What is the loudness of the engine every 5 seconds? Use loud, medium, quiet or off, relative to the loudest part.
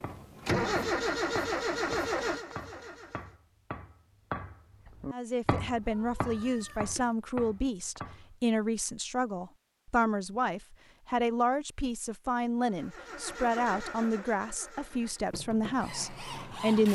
loud, off, medium, medium.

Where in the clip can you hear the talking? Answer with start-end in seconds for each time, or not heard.
5.1-16.8.